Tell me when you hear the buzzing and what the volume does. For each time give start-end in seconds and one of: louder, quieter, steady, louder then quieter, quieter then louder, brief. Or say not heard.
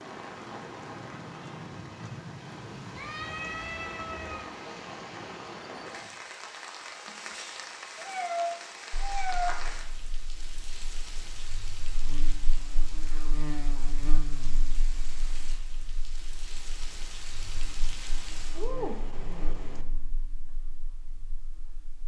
8.9-22.0 louder then quieter.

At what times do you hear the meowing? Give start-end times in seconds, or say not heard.
3.0-4.5, 8.0-9.6, 18.6-19.9.